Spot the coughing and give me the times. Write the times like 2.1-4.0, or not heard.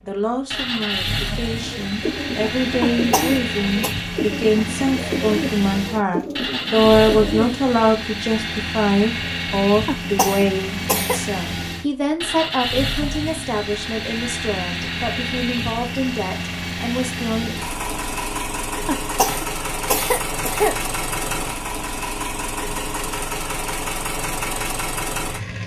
2.8-4.0, 9.8-11.2, 18.9-20.8.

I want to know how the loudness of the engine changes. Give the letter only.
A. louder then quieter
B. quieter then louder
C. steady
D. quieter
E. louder
C.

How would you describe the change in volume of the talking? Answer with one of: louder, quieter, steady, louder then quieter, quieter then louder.
louder then quieter.